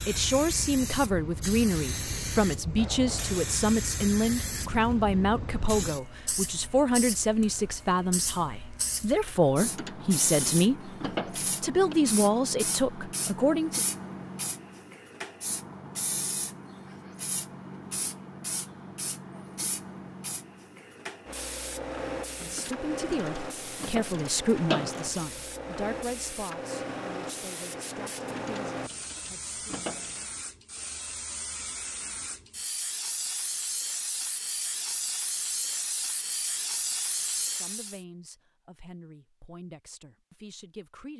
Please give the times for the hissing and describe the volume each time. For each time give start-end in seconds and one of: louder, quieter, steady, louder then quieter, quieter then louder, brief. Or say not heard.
0.0-38.0 steady.